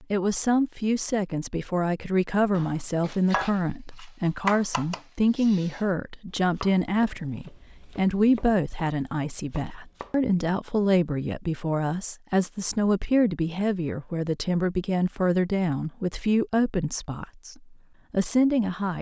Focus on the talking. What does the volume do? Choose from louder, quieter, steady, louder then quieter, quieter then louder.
steady.